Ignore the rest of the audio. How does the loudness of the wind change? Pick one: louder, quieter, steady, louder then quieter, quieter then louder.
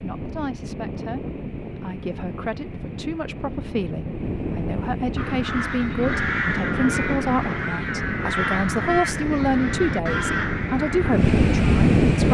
louder.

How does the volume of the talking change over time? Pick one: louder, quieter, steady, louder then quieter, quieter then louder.
louder.